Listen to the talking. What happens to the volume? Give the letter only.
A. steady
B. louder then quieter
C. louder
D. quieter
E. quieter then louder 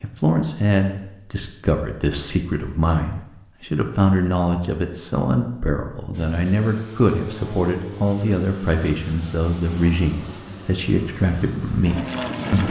A.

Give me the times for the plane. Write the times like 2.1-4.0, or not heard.
6.1-12.6.